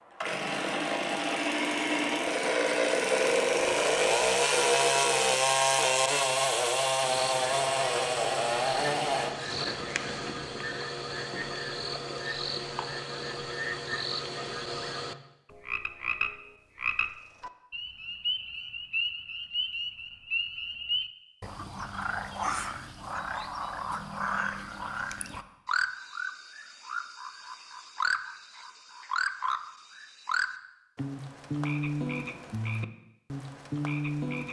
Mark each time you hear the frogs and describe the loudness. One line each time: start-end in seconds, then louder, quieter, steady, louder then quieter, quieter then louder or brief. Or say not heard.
7.0-34.4 steady.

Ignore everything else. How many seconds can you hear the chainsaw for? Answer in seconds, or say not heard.
9 s.